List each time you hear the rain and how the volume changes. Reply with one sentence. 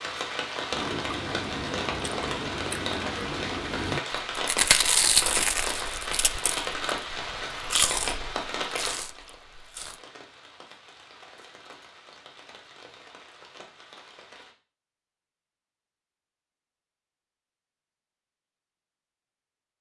The rain can be heard from 0.0 to 14.6 s, getting quieter.